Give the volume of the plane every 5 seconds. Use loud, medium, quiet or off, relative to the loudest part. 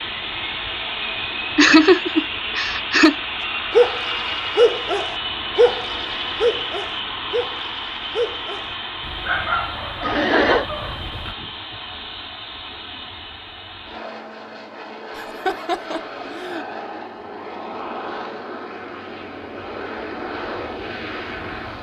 loud, loud, medium, medium, loud.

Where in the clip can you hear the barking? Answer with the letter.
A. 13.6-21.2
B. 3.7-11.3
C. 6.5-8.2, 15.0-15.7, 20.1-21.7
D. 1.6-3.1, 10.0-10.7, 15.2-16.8
B.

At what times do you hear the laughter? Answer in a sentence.
The laughter can be heard from 1.6 to 3.1 s, from 10.0 to 10.7 s and from 15.2 to 16.8 s.